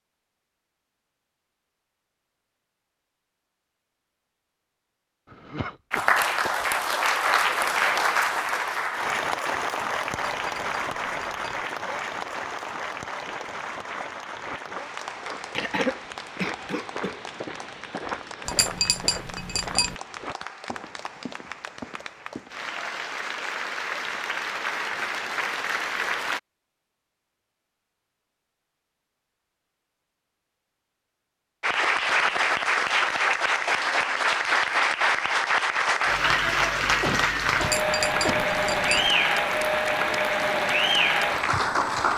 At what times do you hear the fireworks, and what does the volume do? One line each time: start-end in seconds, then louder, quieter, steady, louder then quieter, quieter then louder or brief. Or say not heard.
not heard.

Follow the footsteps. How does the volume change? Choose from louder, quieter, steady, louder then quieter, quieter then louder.
louder then quieter.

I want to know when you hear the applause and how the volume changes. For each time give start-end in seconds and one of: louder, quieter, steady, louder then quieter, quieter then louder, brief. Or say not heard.
5.9-26.4 quieter then louder
31.6-42.1 steady.